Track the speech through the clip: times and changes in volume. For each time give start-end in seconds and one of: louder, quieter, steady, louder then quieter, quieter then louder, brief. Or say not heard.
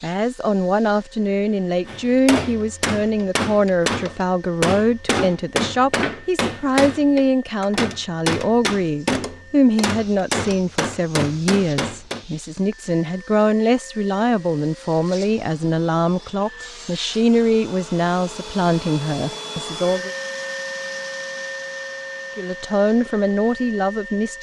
0.0-20.1 steady
22.4-24.3 brief.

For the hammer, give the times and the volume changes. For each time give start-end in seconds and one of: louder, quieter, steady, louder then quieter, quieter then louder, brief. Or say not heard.
1.9-12.2 steady.